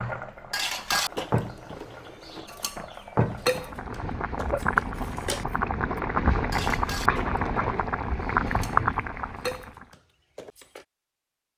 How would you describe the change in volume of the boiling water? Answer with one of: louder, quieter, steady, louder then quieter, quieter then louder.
louder.